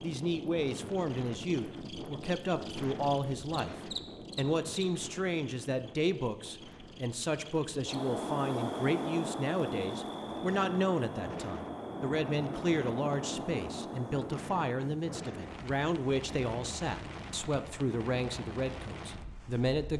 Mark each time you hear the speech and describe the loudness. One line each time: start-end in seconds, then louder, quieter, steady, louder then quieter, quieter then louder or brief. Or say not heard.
0.0-19.9 steady.